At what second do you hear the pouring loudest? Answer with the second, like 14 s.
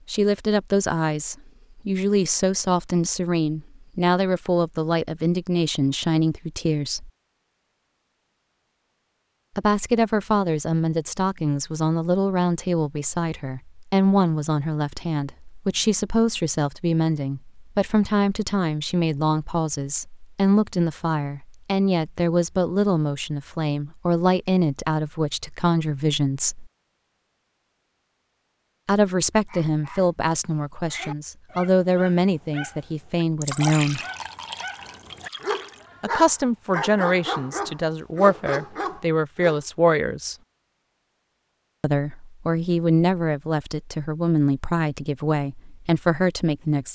34 s.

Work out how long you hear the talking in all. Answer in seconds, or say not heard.
39 s.